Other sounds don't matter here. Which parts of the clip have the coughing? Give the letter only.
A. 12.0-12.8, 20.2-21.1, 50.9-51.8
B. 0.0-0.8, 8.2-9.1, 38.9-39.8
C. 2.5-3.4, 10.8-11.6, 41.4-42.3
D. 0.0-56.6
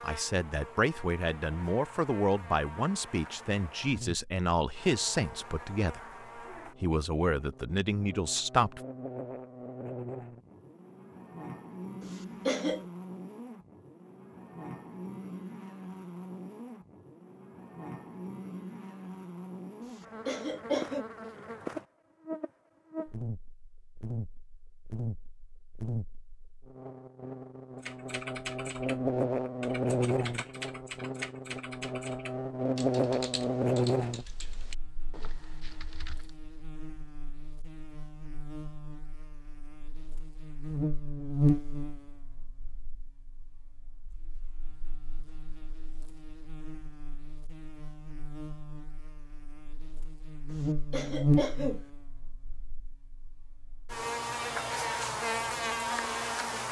A.